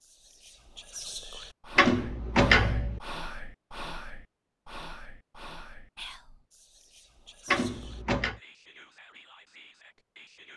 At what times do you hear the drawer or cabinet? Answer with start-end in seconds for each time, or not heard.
1.8-3.0, 7.5-8.4.